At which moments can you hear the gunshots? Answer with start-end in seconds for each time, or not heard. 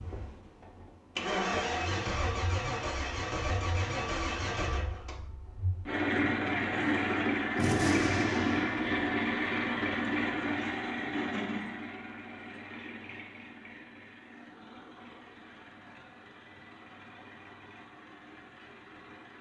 7.5-9.2.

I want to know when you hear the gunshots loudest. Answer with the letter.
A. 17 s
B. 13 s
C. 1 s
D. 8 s
D.